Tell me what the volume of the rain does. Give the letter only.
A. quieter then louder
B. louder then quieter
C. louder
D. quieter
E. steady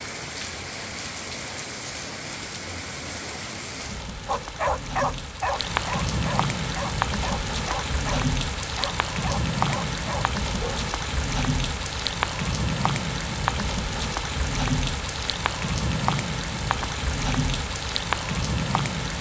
C.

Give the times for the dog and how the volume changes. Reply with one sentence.
You can hear the dog from 4.2 to 10.8 s, getting quieter.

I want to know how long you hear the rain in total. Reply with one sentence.
You can hear the rain for 19 seconds altogether.